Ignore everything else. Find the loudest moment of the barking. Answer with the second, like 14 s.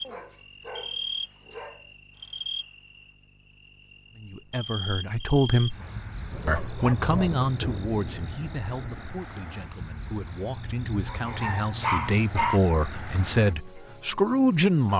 12 s.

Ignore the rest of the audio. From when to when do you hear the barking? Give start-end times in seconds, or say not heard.
0.0-1.9, 5.8-7.8, 11.1-12.6.